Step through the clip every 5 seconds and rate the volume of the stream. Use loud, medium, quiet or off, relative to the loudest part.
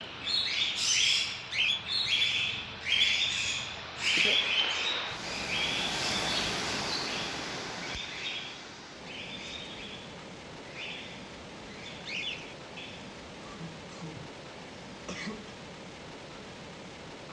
medium, loud, medium, medium.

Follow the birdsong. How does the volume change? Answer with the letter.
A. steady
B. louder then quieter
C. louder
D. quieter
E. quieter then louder
D.